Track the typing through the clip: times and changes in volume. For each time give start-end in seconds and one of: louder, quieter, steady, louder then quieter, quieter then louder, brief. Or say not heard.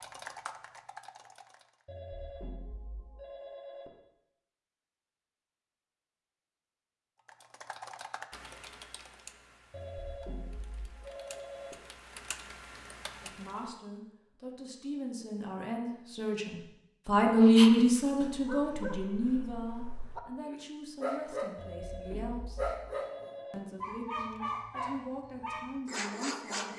0.0-1.9 brief
7.2-13.8 quieter then louder.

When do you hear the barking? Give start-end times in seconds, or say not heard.
17.4-26.7.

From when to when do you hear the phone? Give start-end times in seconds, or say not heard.
1.9-3.9, 9.7-11.8, 21.6-23.6.